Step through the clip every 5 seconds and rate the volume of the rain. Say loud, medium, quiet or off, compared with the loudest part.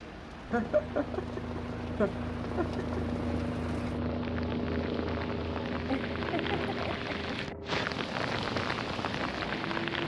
medium, loud.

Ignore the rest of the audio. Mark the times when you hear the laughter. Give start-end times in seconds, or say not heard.
0.5-3.0, 5.8-7.8.